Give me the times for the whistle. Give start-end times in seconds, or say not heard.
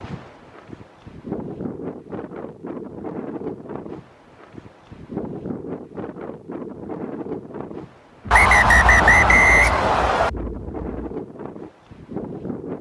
8.3-10.3.